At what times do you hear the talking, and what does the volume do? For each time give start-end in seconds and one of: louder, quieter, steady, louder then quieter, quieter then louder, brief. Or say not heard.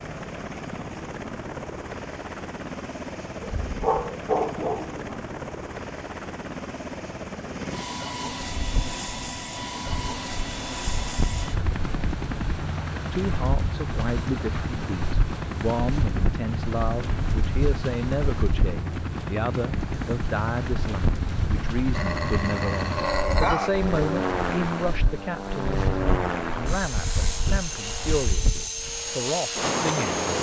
13.1-30.2 steady.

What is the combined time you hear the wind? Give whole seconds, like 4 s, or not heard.
22 s.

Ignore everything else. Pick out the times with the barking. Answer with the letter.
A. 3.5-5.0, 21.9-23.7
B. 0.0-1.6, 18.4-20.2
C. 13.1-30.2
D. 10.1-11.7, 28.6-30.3
A.